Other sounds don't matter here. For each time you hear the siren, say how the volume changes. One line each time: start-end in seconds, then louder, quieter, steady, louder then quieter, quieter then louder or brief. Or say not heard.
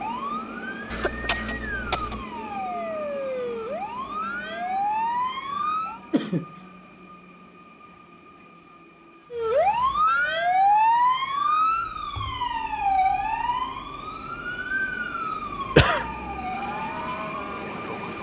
0.0-6.0 louder
9.3-18.1 quieter.